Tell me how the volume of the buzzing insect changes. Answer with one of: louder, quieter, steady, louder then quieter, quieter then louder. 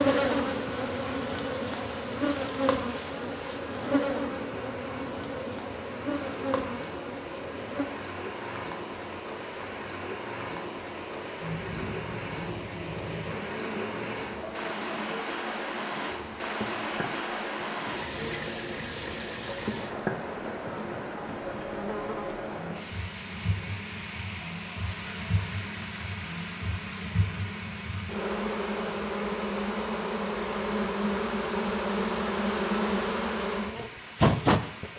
quieter then louder.